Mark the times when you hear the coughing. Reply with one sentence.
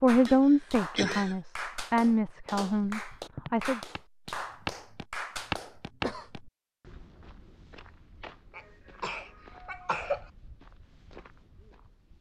You can hear the coughing from 0.2 to 1.4 s, from 4.5 to 6.5 s and from 8.6 to 10.2 s.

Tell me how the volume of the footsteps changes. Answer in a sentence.
The loudness of the footsteps goes down.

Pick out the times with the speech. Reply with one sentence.
The speech can be heard from 0.0 to 3.8 s.